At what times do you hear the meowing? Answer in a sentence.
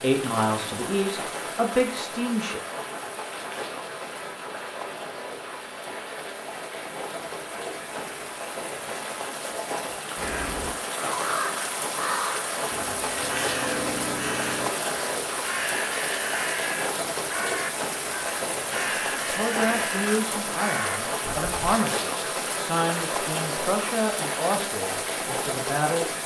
You can't hear the meowing here.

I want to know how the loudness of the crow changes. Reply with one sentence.
The volume of the crow stays about the same.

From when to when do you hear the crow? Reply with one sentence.
The crow can be heard from 10.2 to 21.8 s.